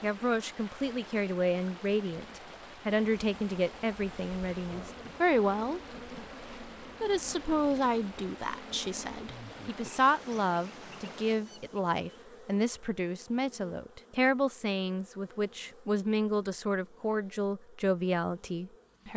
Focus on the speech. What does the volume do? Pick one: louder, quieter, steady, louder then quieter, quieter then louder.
steady.